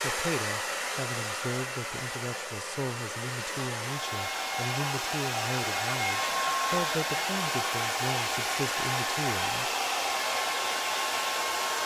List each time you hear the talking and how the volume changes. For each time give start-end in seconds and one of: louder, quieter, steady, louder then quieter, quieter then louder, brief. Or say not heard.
0.0-9.7 steady.